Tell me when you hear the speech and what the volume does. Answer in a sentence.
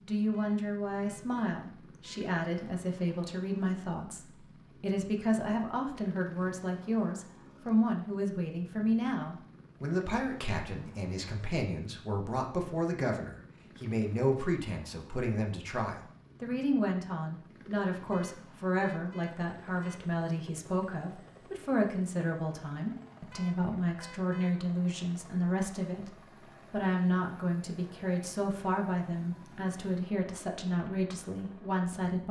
The speech can be heard from 0.1 to 32.2 s, at a steady volume.